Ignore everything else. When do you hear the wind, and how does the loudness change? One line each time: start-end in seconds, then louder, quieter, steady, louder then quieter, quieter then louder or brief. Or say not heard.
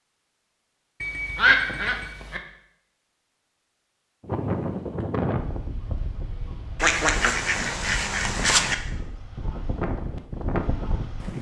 4.2-11.3 quieter then louder.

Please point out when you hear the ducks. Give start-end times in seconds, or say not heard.
1.0-2.4, 6.8-8.8.